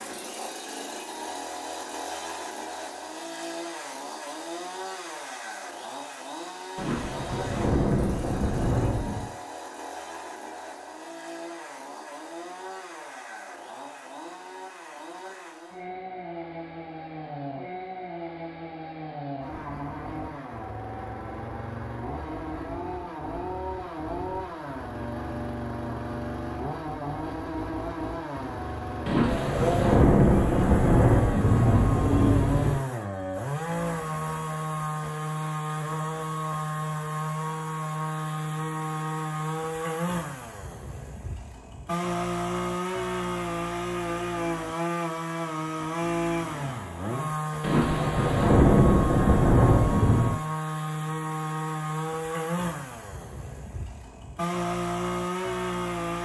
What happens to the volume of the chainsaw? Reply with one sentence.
The loudness of the chainsaw goes up.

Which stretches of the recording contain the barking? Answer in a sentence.
You can't hear the barking here.